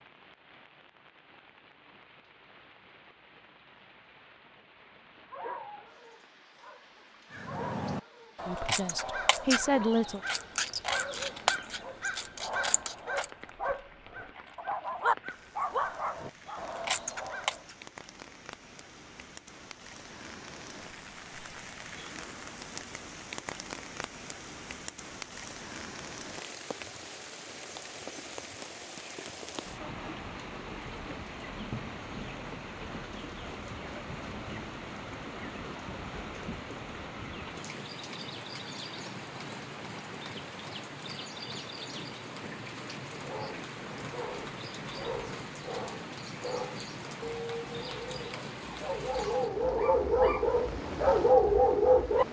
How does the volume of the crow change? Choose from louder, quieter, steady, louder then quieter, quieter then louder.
quieter then louder.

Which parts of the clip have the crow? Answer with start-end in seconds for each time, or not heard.
7.3-17.8.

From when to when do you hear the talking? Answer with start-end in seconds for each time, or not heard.
8.4-10.2.